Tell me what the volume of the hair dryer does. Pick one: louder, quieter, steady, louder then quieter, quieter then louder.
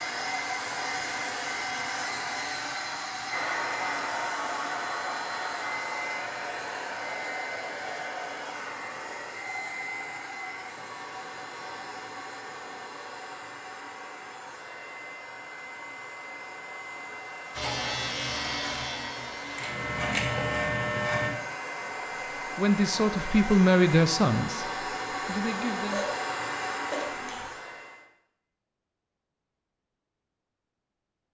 quieter then louder.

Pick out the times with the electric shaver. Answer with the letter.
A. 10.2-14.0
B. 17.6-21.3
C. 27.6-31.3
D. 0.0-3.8
B.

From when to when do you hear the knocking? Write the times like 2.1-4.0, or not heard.
not heard.